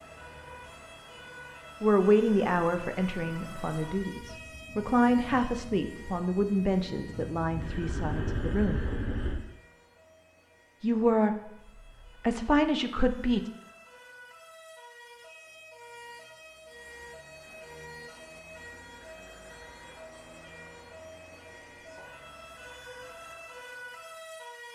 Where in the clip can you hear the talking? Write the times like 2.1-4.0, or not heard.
1.8-8.8, 10.8-11.6, 12.2-13.5.